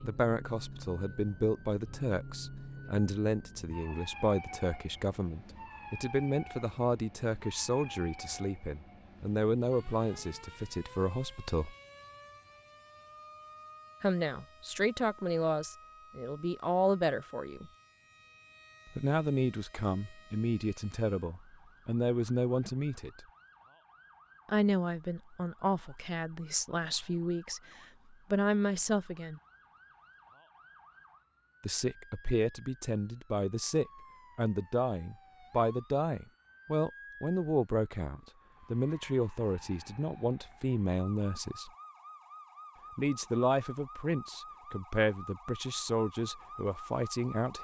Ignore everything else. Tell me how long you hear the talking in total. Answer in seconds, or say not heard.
39 s.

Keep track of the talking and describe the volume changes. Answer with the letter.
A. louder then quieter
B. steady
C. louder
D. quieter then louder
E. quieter
B.